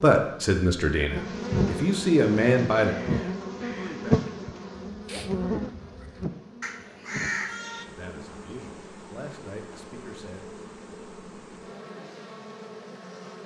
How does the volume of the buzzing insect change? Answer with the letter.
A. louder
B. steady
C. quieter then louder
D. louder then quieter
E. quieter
E.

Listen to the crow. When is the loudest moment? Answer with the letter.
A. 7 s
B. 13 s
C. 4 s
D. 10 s
A.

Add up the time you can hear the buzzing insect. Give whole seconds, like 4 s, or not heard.
13 s.